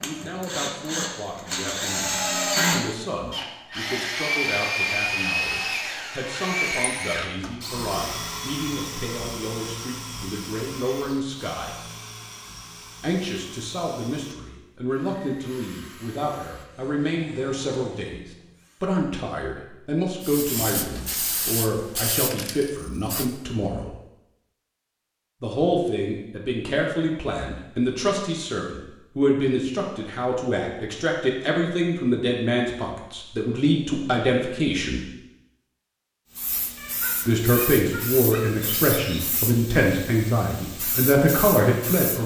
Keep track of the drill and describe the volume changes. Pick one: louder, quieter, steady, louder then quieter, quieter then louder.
quieter.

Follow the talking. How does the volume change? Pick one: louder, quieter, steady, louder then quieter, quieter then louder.
louder.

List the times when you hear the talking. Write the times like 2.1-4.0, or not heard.
0.0-11.8, 13.0-23.9, 25.4-35.0, 37.2-42.2.